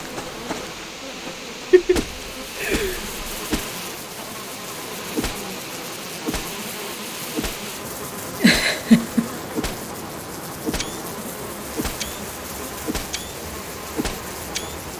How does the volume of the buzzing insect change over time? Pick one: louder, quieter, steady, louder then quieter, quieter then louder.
steady.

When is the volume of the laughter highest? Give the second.
9 s.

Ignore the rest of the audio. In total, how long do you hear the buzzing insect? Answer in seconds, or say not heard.
15 s.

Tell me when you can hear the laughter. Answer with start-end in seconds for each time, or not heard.
1.7-3.1, 8.4-9.3.